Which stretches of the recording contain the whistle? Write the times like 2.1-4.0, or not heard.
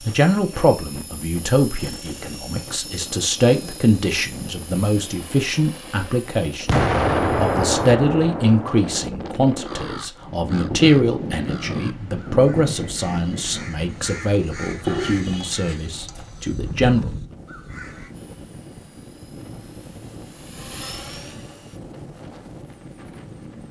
not heard.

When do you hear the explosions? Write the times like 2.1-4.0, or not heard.
6.7-9.1.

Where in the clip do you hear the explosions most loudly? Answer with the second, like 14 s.
7 s.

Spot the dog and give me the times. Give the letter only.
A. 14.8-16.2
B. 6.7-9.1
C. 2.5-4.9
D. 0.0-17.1
A.